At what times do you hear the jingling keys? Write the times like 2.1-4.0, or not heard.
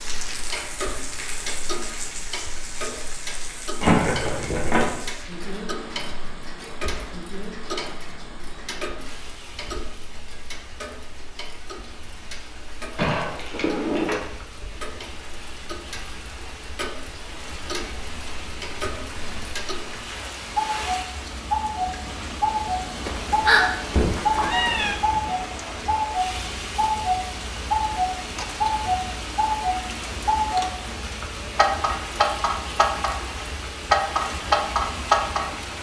3.8-4.9, 12.9-14.3, 23.9-24.9.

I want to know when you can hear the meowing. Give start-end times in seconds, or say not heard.
23.1-24.9.